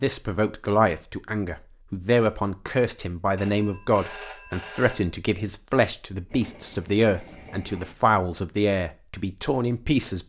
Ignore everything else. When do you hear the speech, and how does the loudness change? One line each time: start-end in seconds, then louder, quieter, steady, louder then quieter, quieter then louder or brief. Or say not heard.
0.0-10.2 steady.